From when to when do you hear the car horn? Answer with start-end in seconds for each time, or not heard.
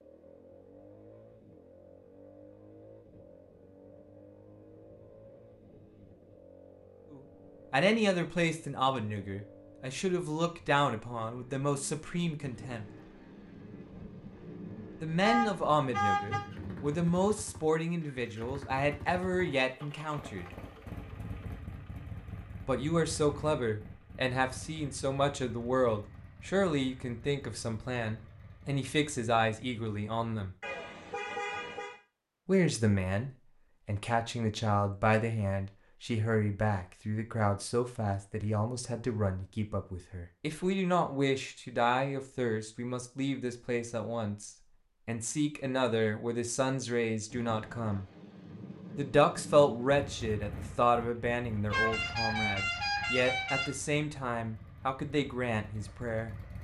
15.2-16.4, 30.6-31.9, 51.7-53.7.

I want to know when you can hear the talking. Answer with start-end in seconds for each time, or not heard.
7.1-12.8, 15.0-20.4, 22.6-30.6, 32.5-48.0, 49.0-56.4.